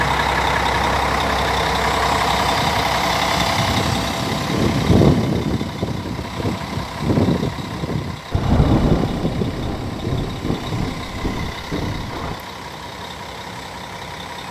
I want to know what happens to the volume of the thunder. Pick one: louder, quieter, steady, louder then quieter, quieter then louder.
quieter.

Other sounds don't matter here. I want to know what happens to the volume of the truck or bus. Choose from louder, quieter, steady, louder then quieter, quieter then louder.
quieter.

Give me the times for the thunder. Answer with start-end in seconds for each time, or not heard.
8.3-12.4.